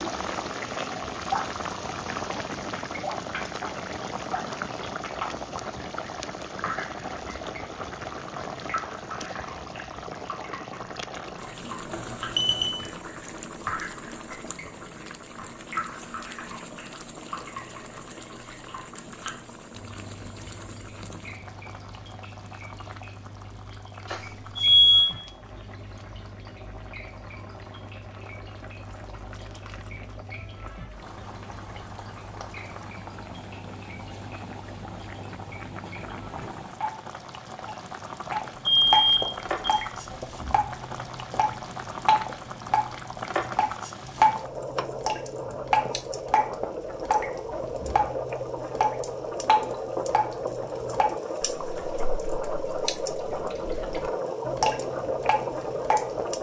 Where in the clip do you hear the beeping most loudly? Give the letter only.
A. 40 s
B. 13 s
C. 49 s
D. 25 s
D.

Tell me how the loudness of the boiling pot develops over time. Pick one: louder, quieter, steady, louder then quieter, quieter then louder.
quieter then louder.